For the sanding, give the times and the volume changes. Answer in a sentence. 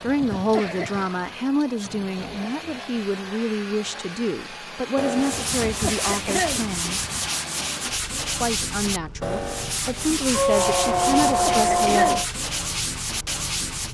The sanding can be heard from 5.0 to 13.8 s, at a steady volume.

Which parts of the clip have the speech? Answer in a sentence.
The speech can be heard from 0.0 to 7.0 s and from 8.4 to 12.2 s.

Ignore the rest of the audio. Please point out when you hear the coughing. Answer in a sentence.
You can hear the coughing from 0.1 to 1.1 s, from 5.4 to 6.7 s and from 11.0 to 12.2 s.